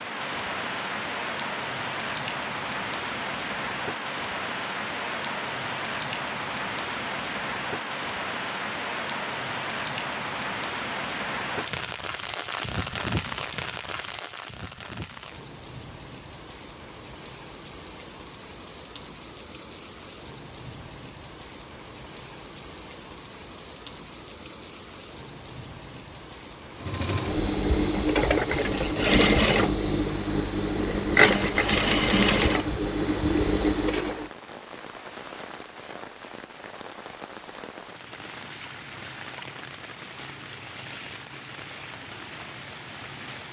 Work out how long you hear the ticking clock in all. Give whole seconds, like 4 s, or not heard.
not heard.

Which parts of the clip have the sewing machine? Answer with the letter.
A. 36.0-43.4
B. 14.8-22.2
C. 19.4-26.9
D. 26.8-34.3
D.